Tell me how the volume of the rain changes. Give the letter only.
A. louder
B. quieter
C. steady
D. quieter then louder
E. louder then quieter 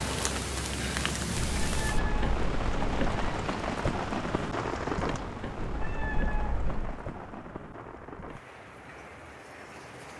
B.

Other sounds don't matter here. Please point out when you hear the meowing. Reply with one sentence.
The meowing can be heard from 1.4 to 3.4 s and from 5.5 to 7.0 s.